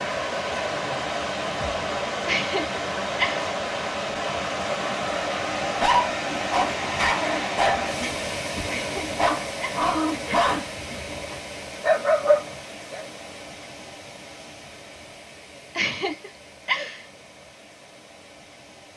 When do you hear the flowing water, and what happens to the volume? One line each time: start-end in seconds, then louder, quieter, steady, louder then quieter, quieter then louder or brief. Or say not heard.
0.0-18.9 quieter.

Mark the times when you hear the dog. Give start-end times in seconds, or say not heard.
5.6-13.1.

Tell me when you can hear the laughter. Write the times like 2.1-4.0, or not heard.
2.2-3.5, 8.7-10.4, 15.8-17.1.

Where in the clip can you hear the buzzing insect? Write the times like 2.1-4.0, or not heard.
not heard.